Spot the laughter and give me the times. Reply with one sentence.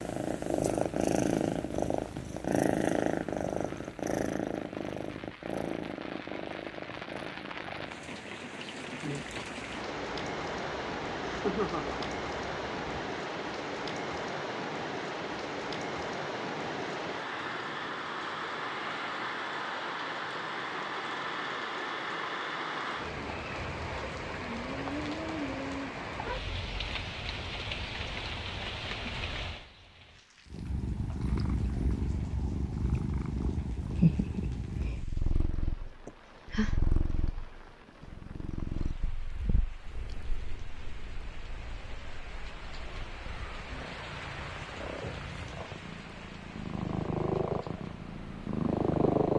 The laughter can be heard from 11.2 to 12.1 s and from 36.0 to 36.8 s.